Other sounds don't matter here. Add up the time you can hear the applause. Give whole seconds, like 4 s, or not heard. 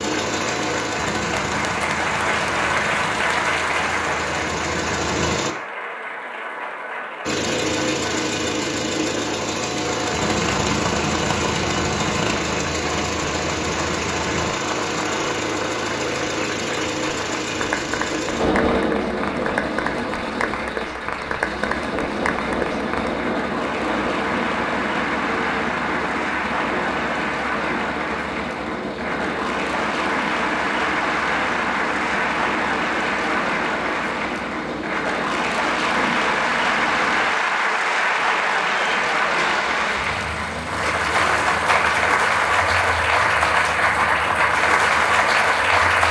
46 s.